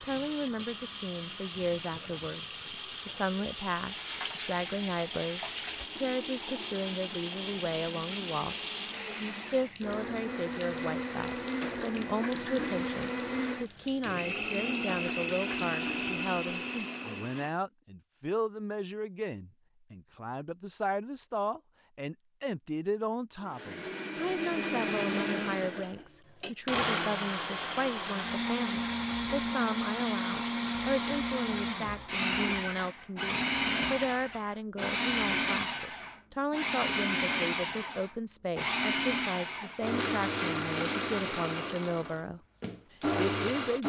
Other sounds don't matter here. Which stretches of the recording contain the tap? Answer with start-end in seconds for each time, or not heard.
0.0-17.5.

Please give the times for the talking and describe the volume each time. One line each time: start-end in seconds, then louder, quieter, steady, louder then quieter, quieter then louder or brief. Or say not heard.
0.0-43.8 steady.